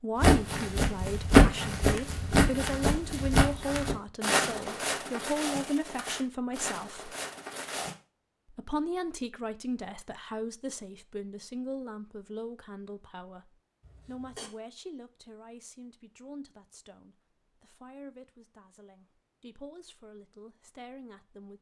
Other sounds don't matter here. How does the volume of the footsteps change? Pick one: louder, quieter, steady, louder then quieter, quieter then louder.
quieter.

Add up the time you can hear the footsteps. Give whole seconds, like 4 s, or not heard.
8 s.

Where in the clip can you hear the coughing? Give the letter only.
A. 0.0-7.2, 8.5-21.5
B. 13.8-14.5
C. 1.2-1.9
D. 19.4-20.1
B.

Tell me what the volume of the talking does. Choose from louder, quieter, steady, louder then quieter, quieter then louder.
quieter.